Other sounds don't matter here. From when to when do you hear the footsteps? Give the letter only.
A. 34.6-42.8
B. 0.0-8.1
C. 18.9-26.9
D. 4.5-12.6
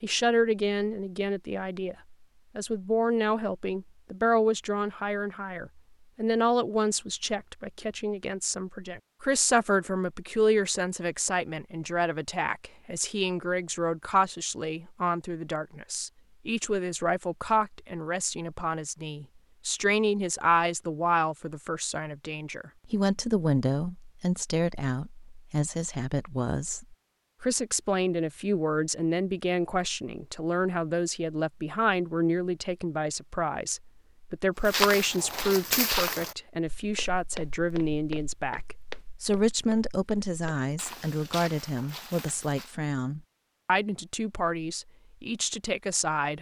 A.